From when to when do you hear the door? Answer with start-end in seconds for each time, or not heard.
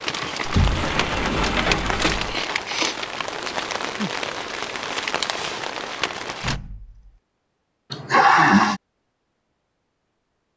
0.5-2.4, 6.4-7.1.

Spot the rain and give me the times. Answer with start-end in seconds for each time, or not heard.
0.0-6.6.